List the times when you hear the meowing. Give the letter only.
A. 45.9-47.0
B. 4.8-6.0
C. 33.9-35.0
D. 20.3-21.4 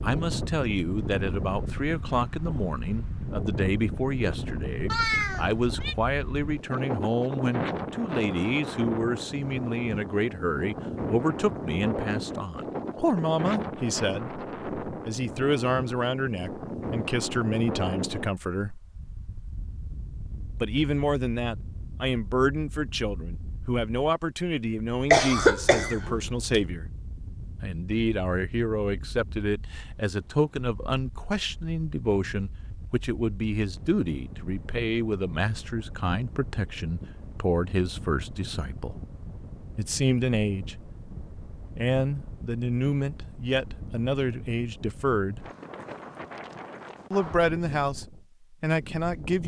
B.